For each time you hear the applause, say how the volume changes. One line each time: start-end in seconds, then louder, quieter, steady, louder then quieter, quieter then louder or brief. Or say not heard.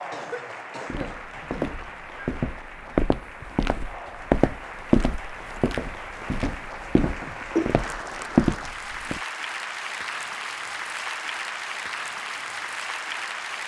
0.0-13.6 louder.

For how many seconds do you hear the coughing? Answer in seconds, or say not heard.
2 s.